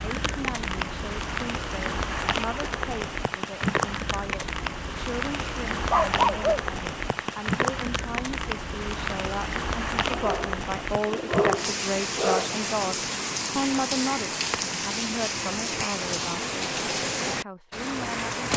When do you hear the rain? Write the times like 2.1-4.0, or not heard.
0.0-18.5.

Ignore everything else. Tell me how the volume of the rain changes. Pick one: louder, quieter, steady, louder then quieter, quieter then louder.
steady.